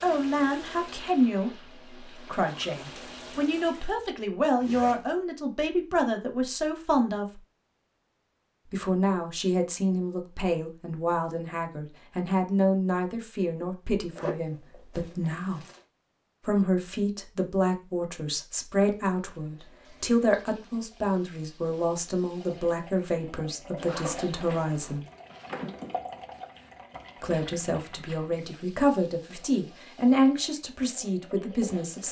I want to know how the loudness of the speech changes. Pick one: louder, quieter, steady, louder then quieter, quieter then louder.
steady.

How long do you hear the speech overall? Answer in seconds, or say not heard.
28 s.